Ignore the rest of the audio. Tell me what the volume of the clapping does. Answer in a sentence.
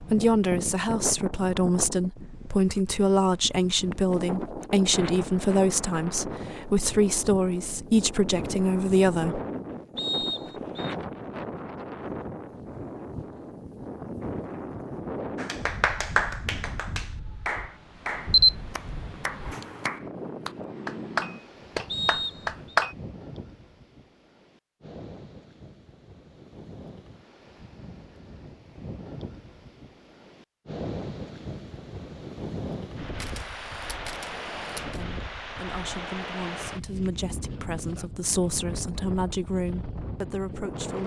The volume of the clapping goes down, then up.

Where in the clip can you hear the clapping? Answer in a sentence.
You can hear the clapping from 15.3 to 22.9 s.